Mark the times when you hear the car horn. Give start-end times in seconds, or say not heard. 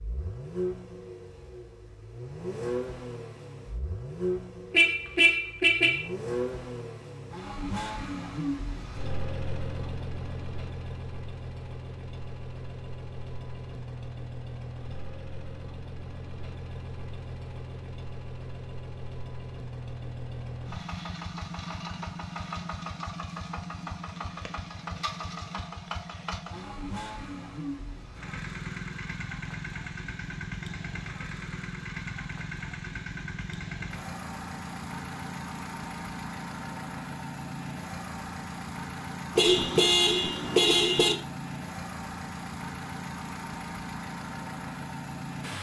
4.7-6.0, 39.4-41.1.